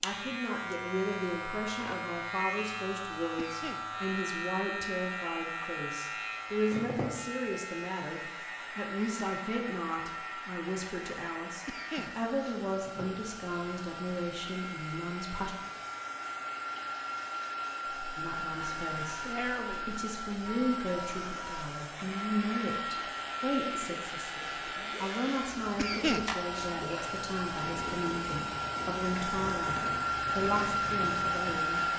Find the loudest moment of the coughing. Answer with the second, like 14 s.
26 s.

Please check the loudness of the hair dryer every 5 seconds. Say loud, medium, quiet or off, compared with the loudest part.
quiet, quiet, quiet, medium, medium, medium, loud.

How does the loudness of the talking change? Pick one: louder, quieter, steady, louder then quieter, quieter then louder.
steady.